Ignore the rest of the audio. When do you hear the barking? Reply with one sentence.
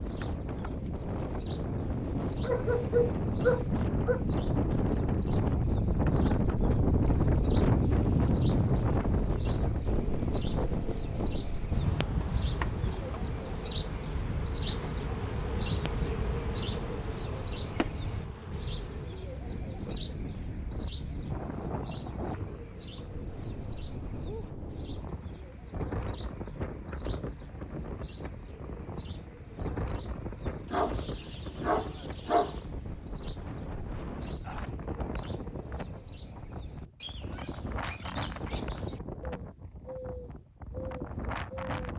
You can hear the barking from 2.4 to 4.2 s and from 30.7 to 32.5 s.